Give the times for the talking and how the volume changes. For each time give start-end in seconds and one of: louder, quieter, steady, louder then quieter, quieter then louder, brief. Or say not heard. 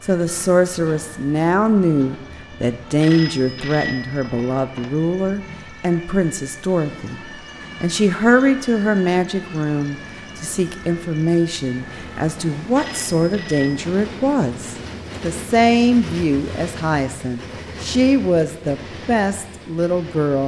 0.0-20.4 steady.